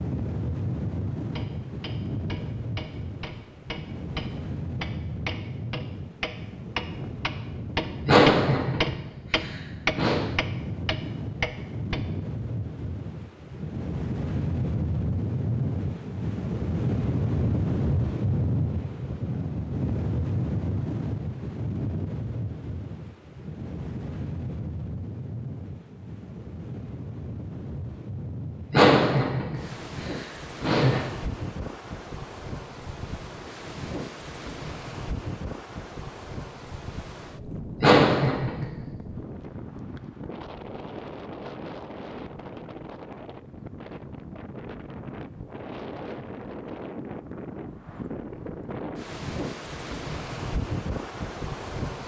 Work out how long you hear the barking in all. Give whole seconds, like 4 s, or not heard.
not heard.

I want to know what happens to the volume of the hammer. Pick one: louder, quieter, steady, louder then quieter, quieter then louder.
louder.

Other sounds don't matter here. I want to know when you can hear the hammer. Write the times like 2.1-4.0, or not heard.
1.2-12.0.